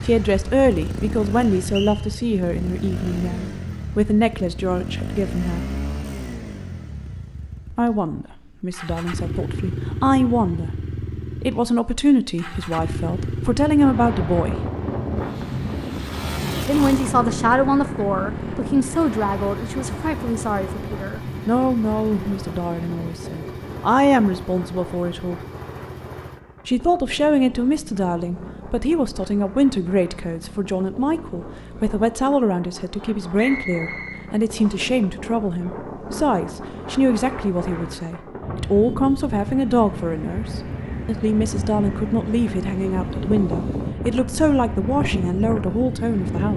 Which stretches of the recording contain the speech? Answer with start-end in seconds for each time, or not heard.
0.0-5.6, 7.7-10.7, 11.4-14.6, 16.6-25.4, 26.6-46.5.